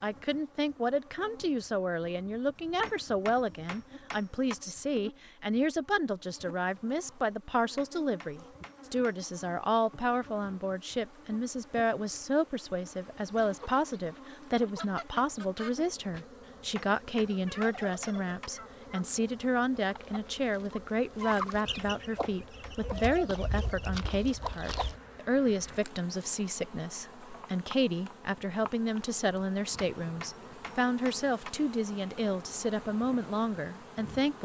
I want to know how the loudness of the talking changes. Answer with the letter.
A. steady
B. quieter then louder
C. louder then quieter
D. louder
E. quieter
A.